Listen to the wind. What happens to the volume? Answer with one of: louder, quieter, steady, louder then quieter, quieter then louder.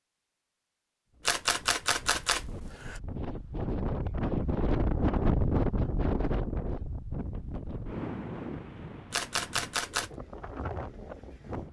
louder then quieter.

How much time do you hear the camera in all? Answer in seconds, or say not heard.
3 s.